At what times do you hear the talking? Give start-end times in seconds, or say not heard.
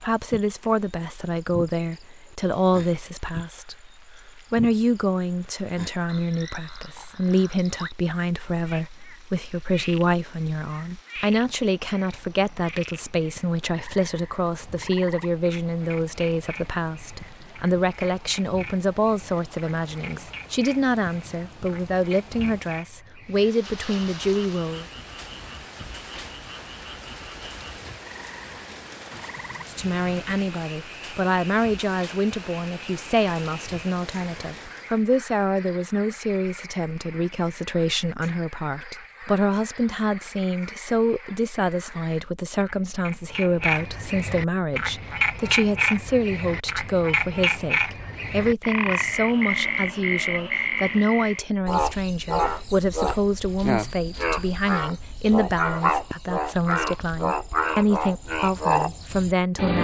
0.0-24.9, 29.7-59.7.